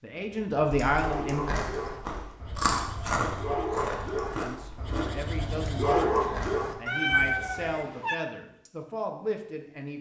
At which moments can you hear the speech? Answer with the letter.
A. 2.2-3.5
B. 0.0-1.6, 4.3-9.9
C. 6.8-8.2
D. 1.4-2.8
B.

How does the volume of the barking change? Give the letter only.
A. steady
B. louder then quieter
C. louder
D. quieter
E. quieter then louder
C.